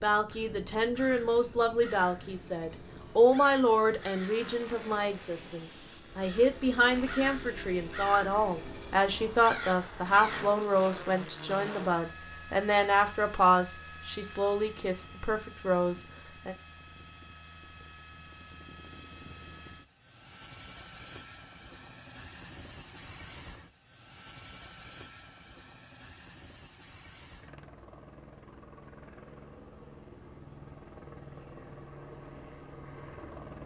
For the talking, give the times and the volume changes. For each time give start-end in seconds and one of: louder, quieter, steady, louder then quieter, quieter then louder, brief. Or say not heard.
0.0-16.6 steady.